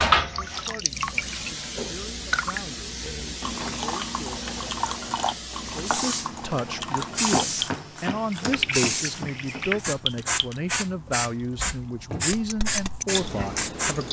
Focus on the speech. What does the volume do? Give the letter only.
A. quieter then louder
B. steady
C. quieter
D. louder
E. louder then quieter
D.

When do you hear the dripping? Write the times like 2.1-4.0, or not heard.
0.1-14.0.